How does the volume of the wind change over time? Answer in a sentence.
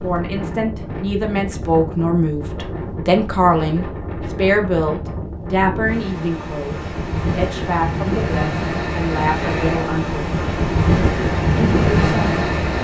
The loudness of the wind goes up.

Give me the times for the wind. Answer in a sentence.
The wind can be heard from 0.0 to 12.7 s.